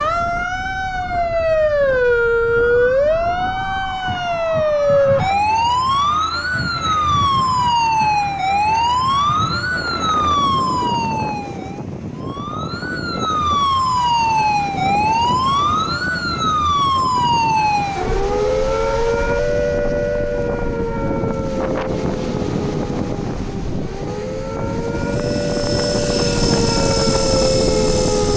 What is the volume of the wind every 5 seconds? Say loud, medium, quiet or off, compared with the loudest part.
quiet, medium, medium, medium, loud, loud.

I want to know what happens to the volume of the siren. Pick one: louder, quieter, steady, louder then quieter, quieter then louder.
quieter.